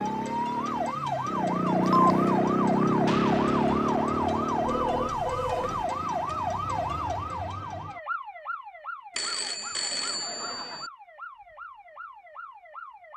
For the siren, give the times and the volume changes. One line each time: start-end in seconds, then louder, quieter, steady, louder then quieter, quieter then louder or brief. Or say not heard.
0.0-13.1 quieter.